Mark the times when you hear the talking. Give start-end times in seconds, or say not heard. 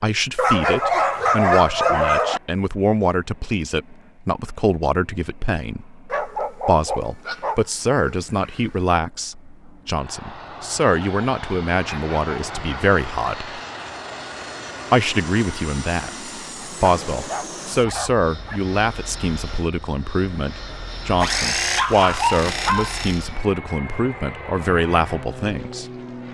0.0-13.5, 14.9-25.9.